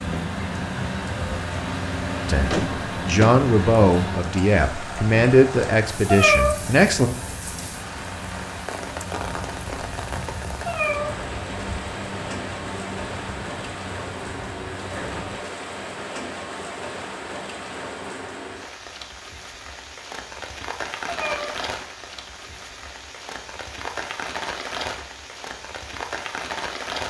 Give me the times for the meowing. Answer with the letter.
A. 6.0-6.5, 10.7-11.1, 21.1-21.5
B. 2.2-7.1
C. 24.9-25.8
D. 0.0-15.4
A.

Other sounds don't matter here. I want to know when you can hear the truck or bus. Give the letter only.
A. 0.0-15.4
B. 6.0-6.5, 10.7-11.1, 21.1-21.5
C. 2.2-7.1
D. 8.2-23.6
A.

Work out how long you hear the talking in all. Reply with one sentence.
You can hear the talking for 5 seconds altogether.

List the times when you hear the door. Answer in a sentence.
The door can be heard from 2.5 to 3.5 s.